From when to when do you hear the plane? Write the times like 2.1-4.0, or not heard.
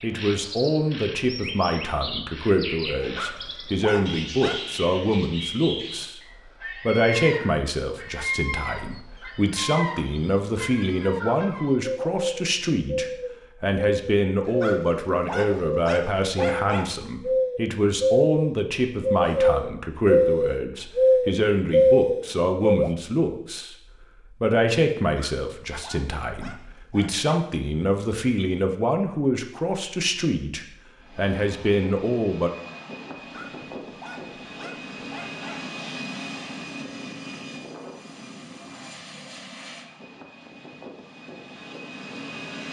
31.0-42.6.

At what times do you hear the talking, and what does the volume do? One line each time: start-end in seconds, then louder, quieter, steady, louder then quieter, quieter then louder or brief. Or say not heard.
0.0-32.5 steady.